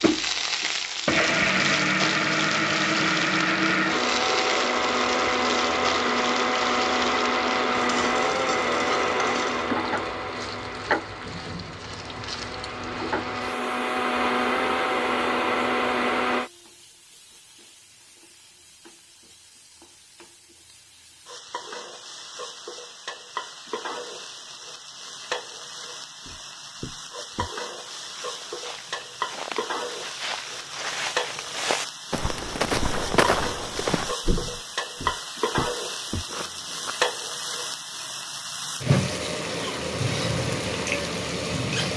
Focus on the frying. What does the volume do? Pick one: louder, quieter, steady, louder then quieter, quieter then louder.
quieter then louder.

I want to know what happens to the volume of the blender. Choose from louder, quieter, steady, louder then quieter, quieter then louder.
quieter then louder.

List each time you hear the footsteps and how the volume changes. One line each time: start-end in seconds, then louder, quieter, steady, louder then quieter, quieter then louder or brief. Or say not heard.
26.2-37.0 louder then quieter.